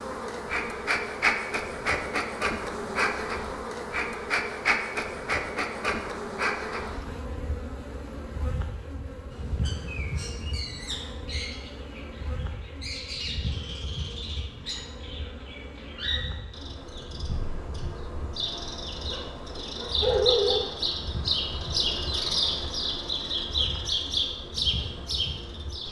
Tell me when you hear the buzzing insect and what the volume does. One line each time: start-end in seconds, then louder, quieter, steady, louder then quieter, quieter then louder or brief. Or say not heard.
0.0-25.8 quieter.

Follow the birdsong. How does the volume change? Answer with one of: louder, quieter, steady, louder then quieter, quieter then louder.
louder.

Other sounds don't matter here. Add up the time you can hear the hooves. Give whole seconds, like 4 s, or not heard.
not heard.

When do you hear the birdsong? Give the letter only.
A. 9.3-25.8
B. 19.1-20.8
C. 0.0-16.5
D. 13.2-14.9
A.